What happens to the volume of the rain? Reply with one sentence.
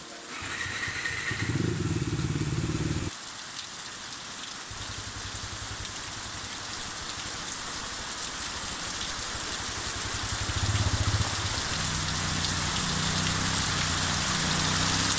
The loudness of the rain goes up.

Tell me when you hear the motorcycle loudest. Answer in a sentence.
The loudest moment of the motorcycle is at 2 seconds.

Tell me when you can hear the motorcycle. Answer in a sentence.
The motorcycle can be heard from 0.0 to 3.1 s and from 4.7 to 15.1 s.